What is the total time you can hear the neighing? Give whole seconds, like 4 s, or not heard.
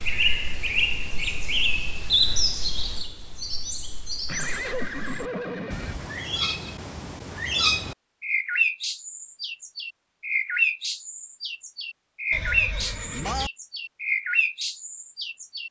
3 s.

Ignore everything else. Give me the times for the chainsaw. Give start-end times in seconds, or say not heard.
not heard.